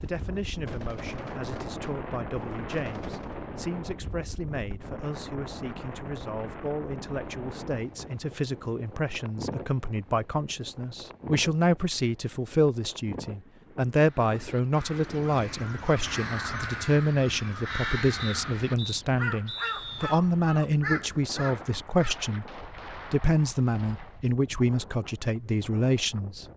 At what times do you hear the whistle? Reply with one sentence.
You can hear the whistle from 18.2 to 20.2 s.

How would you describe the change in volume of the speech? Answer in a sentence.
The volume of the speech goes up.